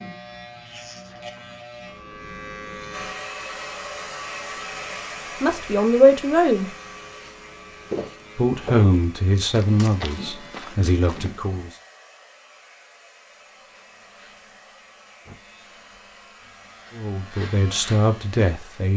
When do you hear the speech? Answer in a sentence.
You can hear the speech from 5.4 to 6.7 s, from 8.3 to 11.7 s and from 16.9 to 18.9 s.